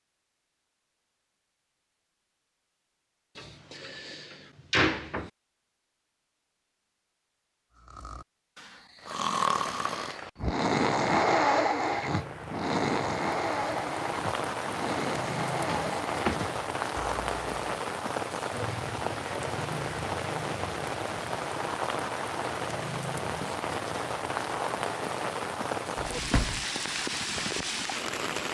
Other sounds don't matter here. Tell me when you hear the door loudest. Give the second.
5 s.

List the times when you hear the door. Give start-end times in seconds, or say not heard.
3.4-5.3, 15.6-16.5, 26.0-26.6.